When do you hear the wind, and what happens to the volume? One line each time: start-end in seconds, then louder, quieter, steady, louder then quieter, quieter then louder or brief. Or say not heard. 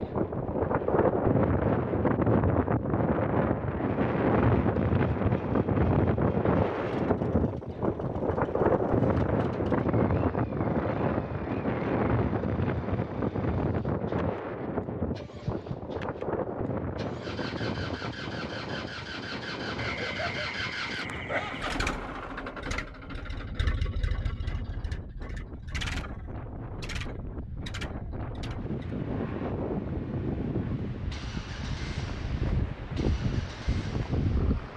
0.0-34.7 quieter then louder.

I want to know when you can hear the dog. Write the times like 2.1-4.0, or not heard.
19.8-21.8.